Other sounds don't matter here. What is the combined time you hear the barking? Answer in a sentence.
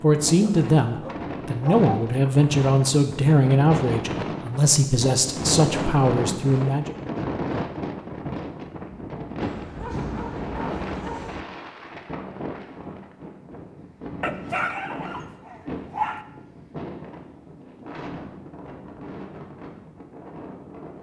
The barking can be heard for 6 seconds in total.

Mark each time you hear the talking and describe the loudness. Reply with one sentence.
You can hear the talking from 0.0 to 7.0 s, at a steady volume.